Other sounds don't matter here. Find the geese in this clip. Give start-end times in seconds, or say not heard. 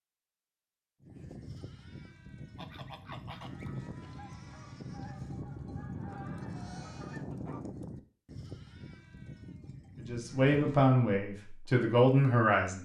2.5-7.6.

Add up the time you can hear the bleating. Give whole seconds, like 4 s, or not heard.
10 s.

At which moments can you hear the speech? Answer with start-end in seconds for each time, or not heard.
10.1-12.7.